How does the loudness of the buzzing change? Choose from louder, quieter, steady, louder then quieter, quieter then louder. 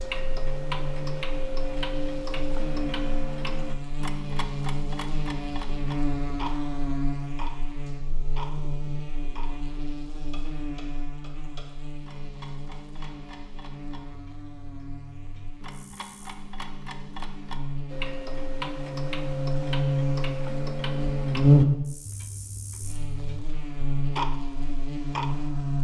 quieter then louder.